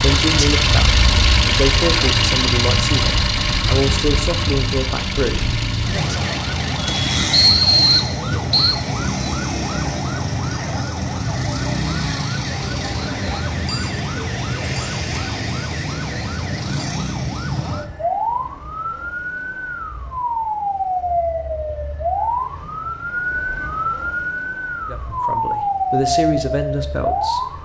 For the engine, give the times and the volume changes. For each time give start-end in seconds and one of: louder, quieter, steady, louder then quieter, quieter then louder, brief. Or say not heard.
0.0-7.2 quieter.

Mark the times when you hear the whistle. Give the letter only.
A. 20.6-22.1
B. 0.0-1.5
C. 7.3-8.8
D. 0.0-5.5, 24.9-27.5
C.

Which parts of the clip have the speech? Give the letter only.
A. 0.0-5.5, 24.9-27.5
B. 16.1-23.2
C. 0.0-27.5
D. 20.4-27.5
A.